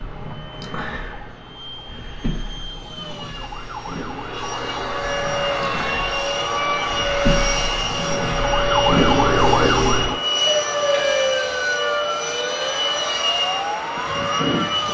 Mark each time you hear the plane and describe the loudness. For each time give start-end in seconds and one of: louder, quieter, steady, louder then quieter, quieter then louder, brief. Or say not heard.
0.0-14.9 louder.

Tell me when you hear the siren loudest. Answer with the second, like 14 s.
9 s.